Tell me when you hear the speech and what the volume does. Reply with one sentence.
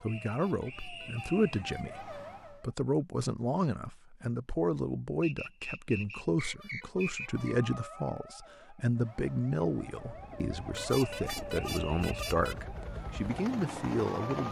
The speech can be heard from 0.0 to 14.4 s, at a steady volume.